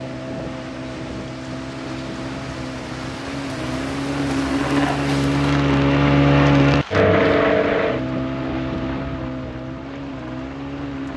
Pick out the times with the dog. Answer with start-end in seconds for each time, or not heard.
not heard.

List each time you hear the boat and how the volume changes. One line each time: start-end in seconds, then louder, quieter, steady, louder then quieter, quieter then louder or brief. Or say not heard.
0.0-11.1 louder then quieter.